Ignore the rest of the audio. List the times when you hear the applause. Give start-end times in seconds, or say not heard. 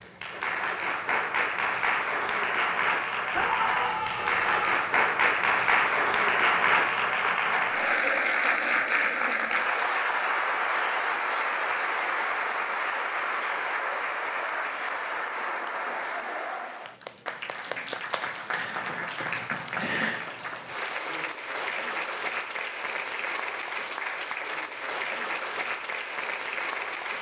0.0-27.1.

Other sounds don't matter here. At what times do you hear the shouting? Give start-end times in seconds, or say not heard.
3.3-4.8.